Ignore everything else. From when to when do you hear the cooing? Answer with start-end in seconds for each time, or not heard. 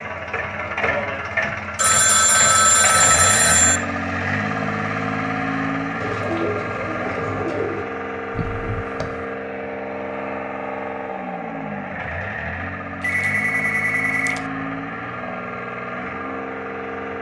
6.0-8.0.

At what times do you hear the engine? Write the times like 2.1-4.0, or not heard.
0.0-17.1.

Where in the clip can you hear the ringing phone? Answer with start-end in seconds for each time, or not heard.
1.8-3.8, 8.3-9.2, 13.0-14.4.